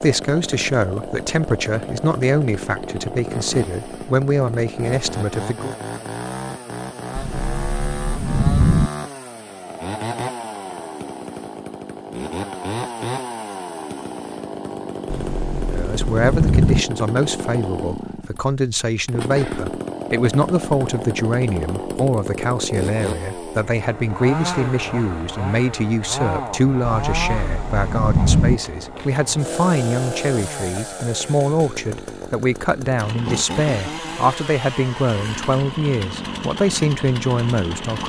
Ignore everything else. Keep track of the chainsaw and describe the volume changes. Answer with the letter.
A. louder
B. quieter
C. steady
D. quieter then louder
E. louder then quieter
C.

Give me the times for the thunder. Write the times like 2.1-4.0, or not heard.
7.2-8.9, 15.1-16.9, 26.8-28.6.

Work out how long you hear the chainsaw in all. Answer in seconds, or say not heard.
38 s.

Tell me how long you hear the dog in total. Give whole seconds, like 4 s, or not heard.
not heard.